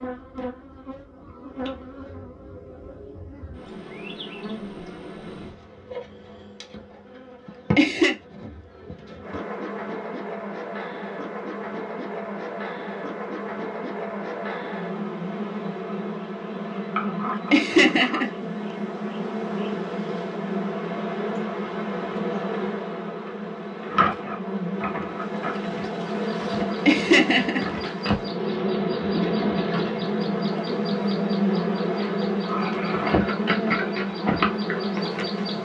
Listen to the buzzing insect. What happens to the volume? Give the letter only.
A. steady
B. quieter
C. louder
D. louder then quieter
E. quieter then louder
C.